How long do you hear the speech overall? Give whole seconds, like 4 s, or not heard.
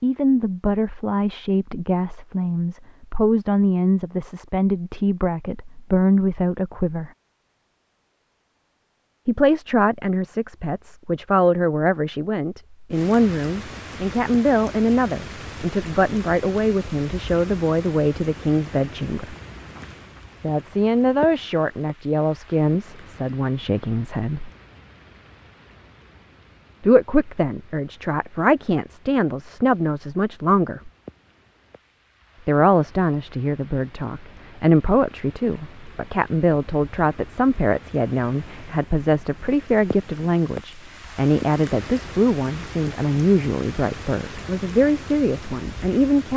39 s.